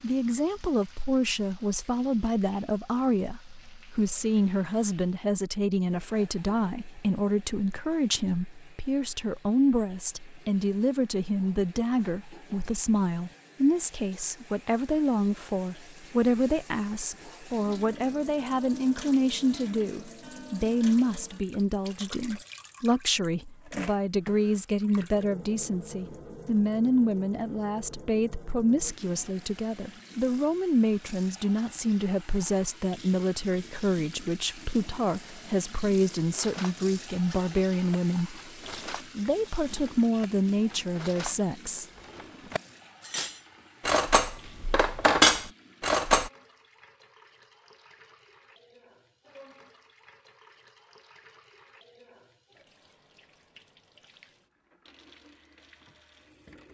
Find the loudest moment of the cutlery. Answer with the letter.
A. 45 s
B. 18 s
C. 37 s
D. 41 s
A.